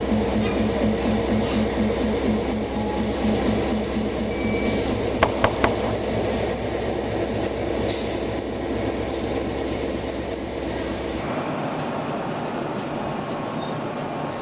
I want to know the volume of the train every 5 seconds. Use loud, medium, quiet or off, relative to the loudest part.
loud, loud, medium.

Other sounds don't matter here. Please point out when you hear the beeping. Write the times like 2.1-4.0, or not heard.
4.3-6.0.